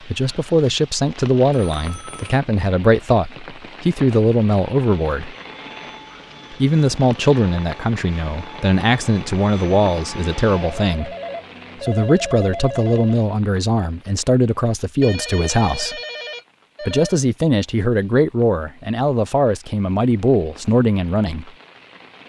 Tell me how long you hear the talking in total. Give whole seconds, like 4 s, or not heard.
19 s.